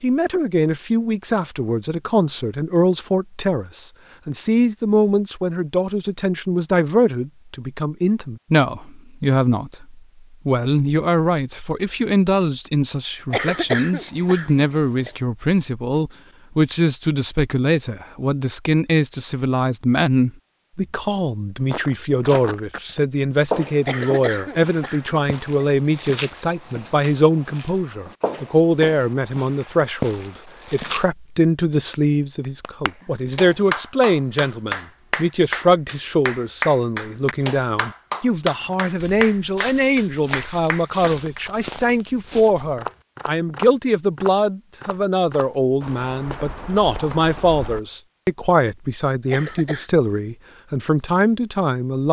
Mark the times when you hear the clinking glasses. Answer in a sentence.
The clinking glasses can't be heard in this clip.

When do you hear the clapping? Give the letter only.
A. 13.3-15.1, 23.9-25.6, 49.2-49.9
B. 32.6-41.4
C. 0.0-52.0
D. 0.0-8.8
B.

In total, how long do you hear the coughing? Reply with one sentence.
The coughing can be heard for 4 seconds in total.